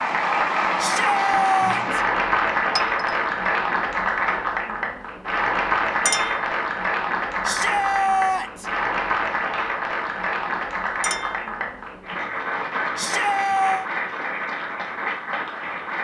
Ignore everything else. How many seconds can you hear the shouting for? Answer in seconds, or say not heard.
3 s.